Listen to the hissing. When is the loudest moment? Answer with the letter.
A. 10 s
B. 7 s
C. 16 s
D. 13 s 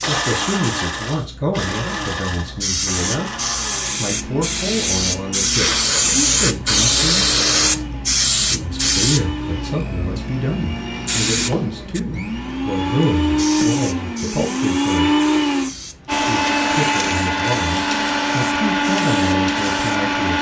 B.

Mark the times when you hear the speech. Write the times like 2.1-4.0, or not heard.
0.0-7.2, 8.5-15.2, 16.1-20.3.